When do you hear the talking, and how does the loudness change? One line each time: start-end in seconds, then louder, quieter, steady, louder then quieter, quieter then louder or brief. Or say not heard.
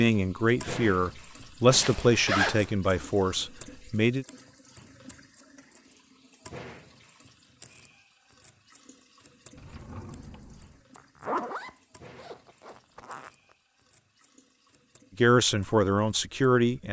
0.0-4.2 louder then quieter
15.2-16.8 brief.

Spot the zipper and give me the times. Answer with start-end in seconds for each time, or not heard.
1.7-2.7, 10.9-13.3.